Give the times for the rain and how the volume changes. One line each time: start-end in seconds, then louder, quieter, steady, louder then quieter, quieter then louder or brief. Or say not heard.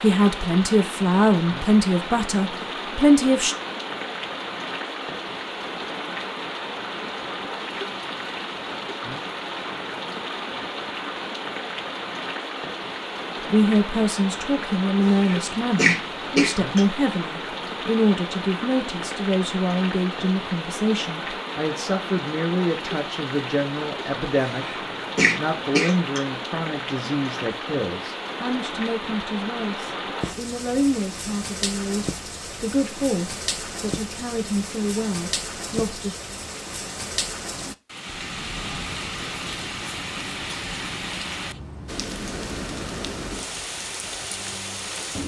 0.0-45.2 steady.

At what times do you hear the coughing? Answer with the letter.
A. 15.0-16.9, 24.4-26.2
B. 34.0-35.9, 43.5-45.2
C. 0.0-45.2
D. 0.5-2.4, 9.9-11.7
A.